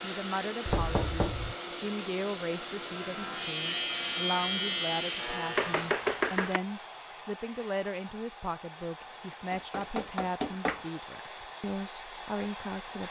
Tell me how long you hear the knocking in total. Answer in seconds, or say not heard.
3 s.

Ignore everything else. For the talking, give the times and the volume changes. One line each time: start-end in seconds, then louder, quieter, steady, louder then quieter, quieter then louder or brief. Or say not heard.
0.0-13.0 steady.